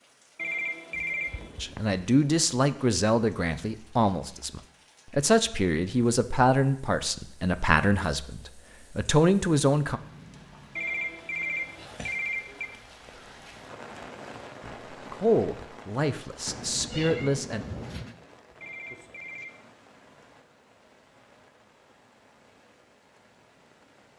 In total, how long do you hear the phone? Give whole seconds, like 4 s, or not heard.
4 s.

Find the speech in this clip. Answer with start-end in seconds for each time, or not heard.
1.6-10.0, 14.6-17.6.